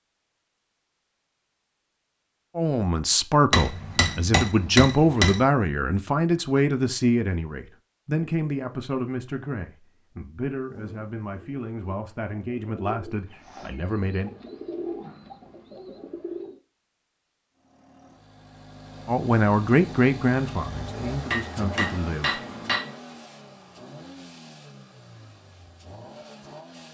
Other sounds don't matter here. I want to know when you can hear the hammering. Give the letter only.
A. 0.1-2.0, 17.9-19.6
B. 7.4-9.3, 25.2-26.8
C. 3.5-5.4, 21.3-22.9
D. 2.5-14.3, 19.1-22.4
C.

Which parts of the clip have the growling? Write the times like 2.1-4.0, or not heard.
not heard.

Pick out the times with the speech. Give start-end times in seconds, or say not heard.
2.5-14.3, 19.1-22.4.